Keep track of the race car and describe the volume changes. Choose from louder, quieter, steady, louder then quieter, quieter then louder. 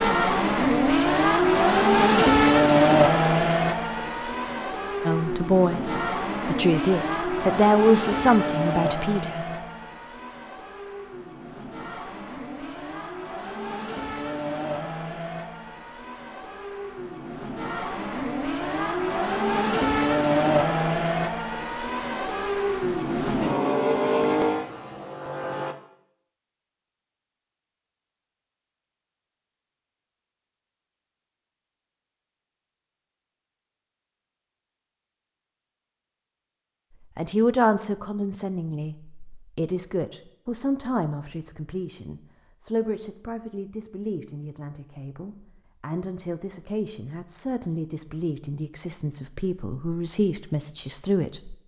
quieter then louder.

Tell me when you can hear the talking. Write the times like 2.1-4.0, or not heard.
5.0-9.4, 37.1-51.5.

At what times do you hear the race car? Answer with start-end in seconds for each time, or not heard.
0.0-25.8.